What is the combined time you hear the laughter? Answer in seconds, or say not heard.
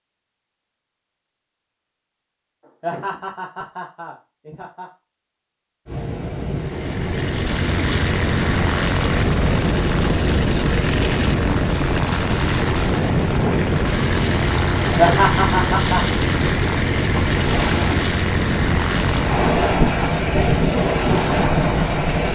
3 s.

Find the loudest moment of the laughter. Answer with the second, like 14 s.
15 s.